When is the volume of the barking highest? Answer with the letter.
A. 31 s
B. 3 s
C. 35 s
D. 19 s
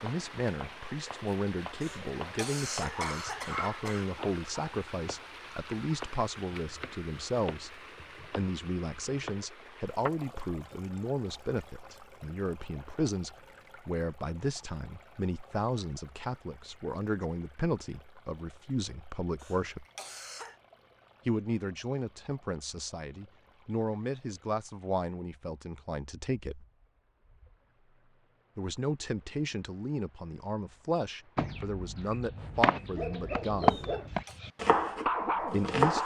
C.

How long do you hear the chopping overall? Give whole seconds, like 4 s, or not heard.
15 s.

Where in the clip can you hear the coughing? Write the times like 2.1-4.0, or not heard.
1.8-4.0, 19.4-20.6, 33.6-34.4.